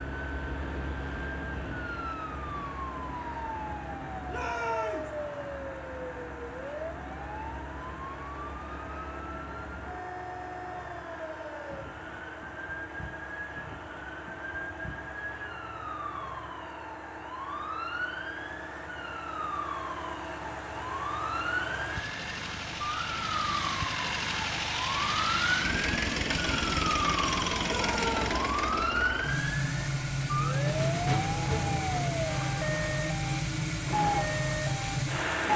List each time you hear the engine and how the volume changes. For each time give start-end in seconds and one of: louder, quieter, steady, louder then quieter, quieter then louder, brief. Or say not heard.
0.0-35.5 louder.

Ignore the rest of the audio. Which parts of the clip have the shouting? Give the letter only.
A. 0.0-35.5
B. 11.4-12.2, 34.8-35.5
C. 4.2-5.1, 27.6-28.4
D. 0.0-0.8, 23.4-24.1
C.